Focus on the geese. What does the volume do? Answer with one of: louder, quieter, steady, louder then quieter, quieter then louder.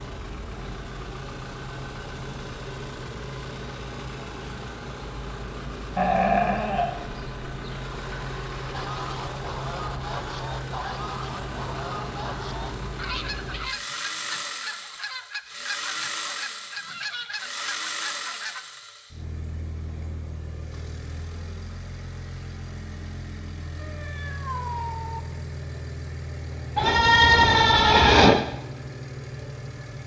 steady.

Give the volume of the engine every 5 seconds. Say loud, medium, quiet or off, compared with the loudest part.
loud, loud, loud, loud, medium, loud.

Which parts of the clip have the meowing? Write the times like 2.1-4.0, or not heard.
23.8-25.2.